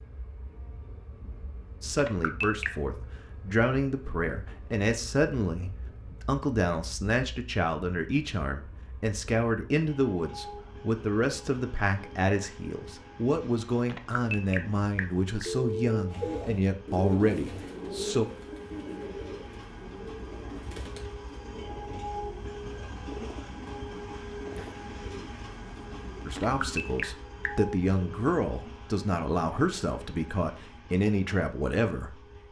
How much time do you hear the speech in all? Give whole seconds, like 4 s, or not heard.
22 s.